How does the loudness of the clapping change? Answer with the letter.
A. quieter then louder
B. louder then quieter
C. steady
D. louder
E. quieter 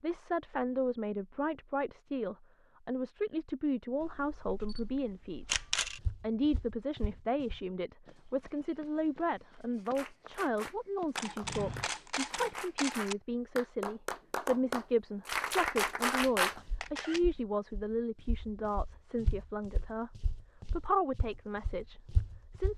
D.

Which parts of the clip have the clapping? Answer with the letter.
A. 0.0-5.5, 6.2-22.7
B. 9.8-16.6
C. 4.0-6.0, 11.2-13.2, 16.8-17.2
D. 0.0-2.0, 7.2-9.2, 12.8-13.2
B.